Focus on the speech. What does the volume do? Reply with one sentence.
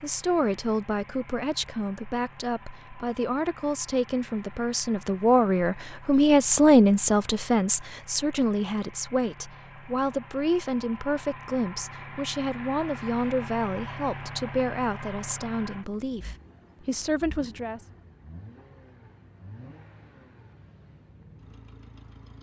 The loudness of the speech goes up, then down.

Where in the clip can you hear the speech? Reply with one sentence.
You can hear the speech from 0.0 to 17.8 s.